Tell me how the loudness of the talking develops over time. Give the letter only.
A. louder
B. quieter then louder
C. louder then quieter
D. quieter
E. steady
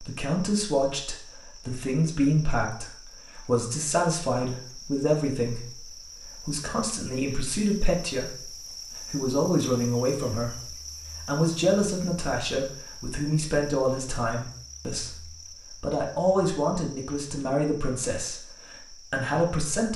E.